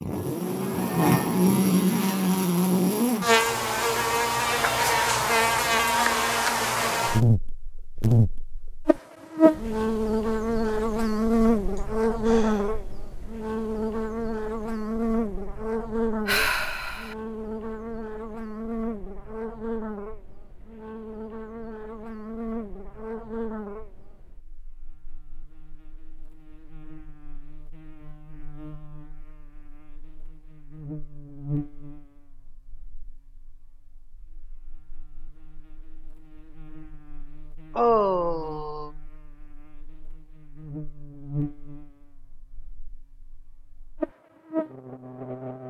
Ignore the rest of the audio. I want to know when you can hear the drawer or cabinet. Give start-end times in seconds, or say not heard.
not heard.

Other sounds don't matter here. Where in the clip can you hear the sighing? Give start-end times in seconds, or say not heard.
11.8-12.8, 16.2-17.1, 37.8-38.9.